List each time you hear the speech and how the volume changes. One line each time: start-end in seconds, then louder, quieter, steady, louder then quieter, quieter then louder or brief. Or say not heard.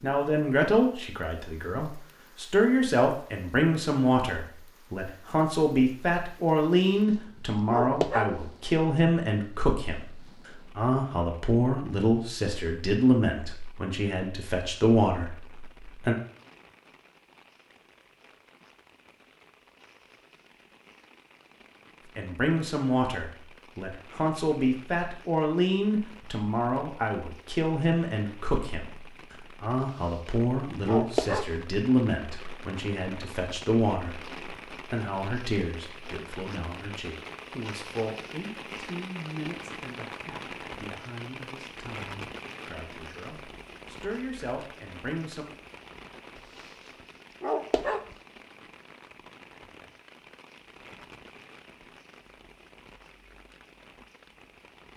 0.0-16.1 steady
22.1-45.5 quieter.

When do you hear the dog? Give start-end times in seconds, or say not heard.
7.7-8.4, 30.9-31.6, 47.4-48.1.